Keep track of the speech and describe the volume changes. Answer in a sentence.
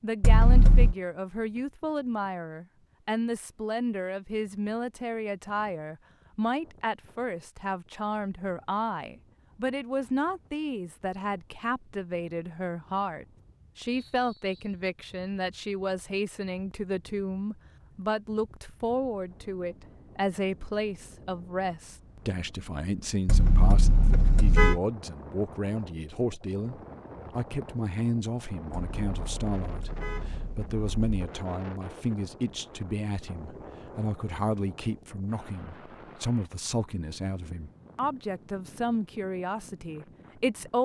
The volume of the speech stays about the same.